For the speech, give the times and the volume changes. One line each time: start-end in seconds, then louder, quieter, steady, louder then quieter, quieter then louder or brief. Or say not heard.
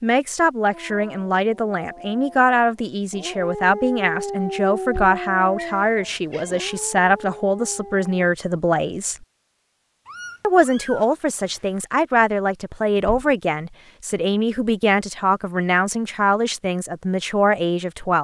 0.0-9.2 steady
10.4-18.1 steady.